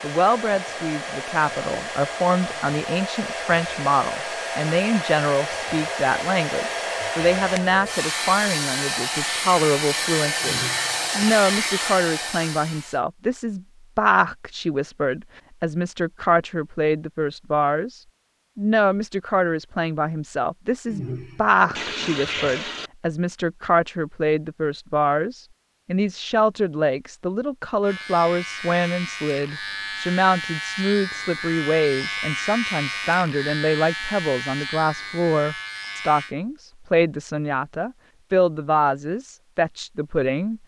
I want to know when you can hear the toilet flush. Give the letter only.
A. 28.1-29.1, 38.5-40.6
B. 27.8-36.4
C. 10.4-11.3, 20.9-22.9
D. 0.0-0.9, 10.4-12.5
C.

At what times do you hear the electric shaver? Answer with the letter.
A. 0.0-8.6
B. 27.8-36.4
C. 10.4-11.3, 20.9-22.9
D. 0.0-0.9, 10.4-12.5
B.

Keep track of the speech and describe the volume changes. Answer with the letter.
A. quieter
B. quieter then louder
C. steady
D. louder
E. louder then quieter
C.